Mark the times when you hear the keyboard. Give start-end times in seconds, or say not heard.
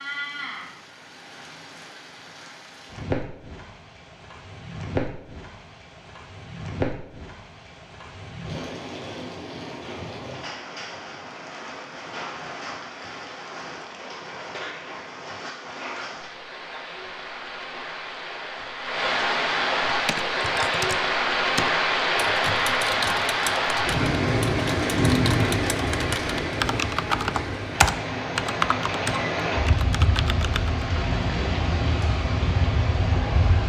19.9-30.9.